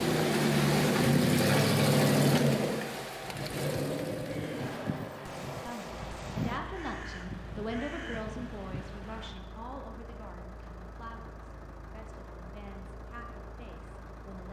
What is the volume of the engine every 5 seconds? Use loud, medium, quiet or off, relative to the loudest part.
loud, quiet, quiet.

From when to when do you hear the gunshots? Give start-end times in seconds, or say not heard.
4.5-6.6.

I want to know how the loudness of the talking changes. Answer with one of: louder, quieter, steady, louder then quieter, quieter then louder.
quieter.